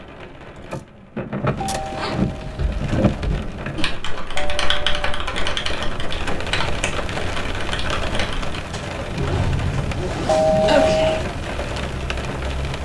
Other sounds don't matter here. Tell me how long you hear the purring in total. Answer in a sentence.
The purring can't be heard in this clip.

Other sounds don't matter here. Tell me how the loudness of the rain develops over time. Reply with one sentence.
The volume of the rain stays about the same.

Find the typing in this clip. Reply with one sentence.
The typing can be heard from 2.4 to 8.7 s.